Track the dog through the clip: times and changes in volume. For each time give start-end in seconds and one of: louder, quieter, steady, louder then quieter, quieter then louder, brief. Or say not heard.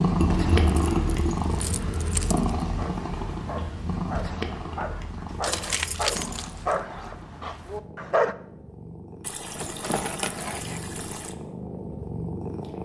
2.6-8.3 louder then quieter.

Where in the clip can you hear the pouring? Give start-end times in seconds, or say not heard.
0.1-1.4, 5.6-6.7, 9.2-11.3.